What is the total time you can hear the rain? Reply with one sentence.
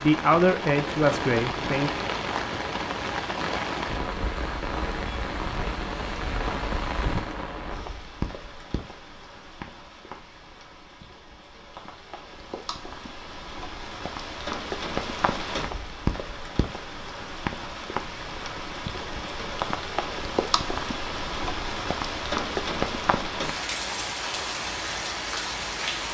You can hear the rain for 26 seconds altogether.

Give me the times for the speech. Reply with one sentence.
You can hear the speech from 0.0 to 1.9 s.